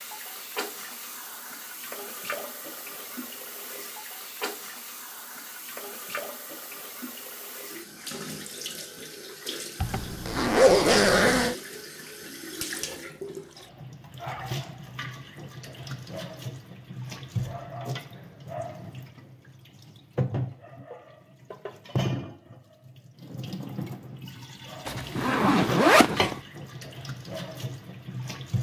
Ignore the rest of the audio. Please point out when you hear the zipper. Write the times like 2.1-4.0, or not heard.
9.8-11.6, 24.9-26.4.